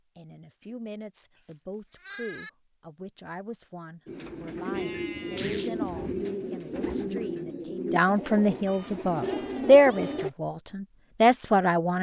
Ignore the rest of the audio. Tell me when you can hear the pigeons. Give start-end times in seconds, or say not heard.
4.0-10.3.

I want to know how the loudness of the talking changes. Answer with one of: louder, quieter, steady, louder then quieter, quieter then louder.
louder.